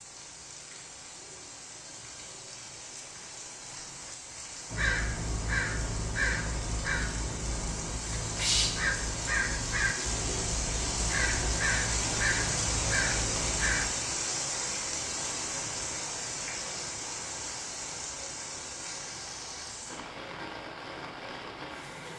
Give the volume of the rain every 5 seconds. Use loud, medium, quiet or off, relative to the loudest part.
quiet, medium, loud, medium, medium.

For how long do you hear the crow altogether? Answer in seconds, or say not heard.
9 s.